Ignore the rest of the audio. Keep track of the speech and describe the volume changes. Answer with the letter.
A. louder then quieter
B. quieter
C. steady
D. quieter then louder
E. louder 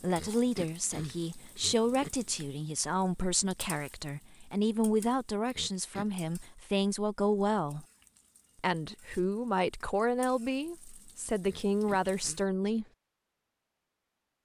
C.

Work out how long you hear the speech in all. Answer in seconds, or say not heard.
12 s.